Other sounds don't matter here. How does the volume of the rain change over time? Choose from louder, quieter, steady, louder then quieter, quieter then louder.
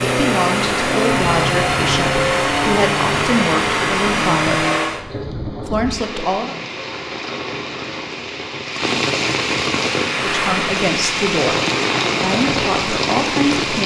louder.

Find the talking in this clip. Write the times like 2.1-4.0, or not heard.
0.0-4.7, 5.7-6.5, 10.2-11.6, 12.2-13.8.